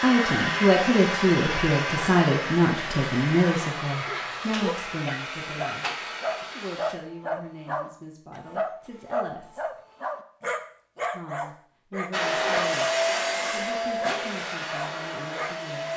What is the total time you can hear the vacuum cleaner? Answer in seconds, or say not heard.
11 s.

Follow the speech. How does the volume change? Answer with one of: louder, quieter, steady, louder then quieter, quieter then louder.
quieter.